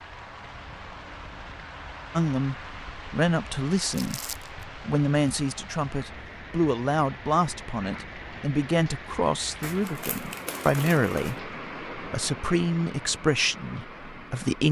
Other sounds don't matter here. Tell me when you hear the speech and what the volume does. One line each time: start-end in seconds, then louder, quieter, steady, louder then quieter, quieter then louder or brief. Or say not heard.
2.1-14.6 steady.